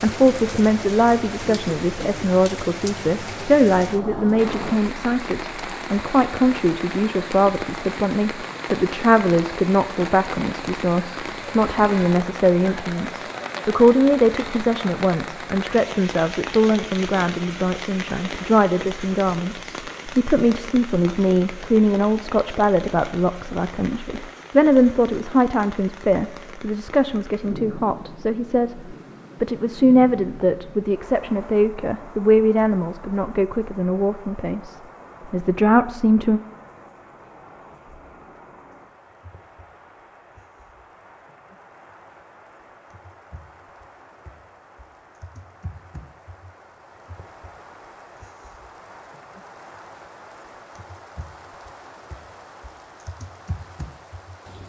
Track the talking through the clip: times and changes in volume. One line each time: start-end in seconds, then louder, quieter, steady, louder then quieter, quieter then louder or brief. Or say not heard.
0.0-36.4 steady.